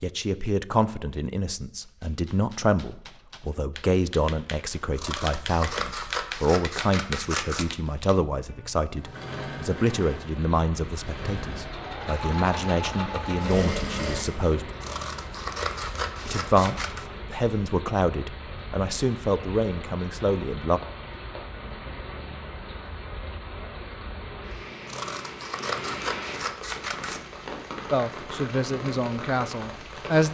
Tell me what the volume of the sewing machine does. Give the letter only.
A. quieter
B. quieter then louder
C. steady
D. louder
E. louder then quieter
B.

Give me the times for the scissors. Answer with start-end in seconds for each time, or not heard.
5.0-7.7, 14.8-17.1, 24.9-27.2.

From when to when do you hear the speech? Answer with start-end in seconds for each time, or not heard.
0.0-14.7, 16.2-20.8, 27.9-30.2.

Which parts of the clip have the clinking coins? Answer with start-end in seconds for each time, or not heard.
not heard.